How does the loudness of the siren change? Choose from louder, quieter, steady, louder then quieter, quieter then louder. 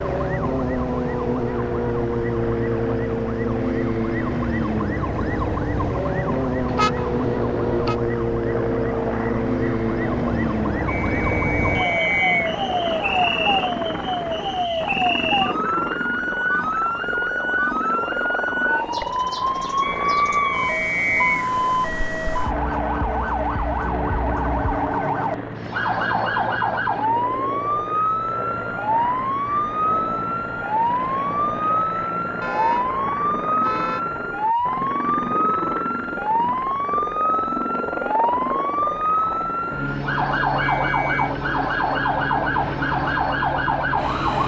steady.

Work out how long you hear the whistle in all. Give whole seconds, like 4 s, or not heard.
4 s.